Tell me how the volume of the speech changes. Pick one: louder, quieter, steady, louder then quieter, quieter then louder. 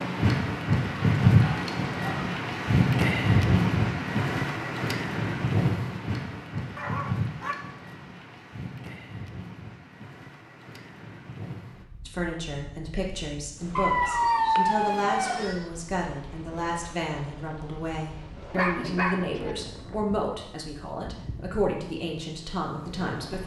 steady.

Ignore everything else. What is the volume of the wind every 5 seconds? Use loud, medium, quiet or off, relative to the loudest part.
loud, medium, quiet, quiet, quiet.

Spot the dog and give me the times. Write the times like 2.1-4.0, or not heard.
1.4-2.2, 6.8-7.5, 13.8-15.7, 18.5-19.6.